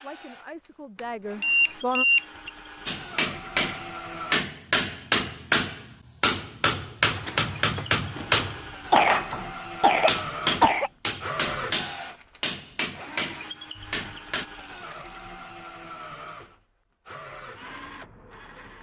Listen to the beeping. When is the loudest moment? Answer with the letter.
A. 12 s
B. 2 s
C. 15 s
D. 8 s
B.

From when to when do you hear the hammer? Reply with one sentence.
You can hear the hammer from 2.9 to 14.4 s.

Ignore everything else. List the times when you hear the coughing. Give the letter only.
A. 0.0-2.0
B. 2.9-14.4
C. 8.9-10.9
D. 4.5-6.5
C.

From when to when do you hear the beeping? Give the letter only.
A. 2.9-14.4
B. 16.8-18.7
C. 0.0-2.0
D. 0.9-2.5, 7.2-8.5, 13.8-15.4
D.